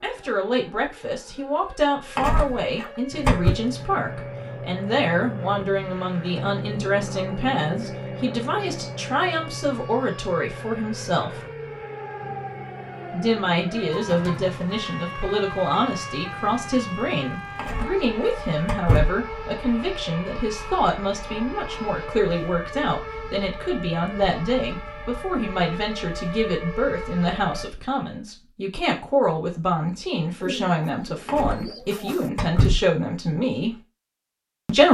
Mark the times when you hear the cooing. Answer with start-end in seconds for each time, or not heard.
30.4-32.3.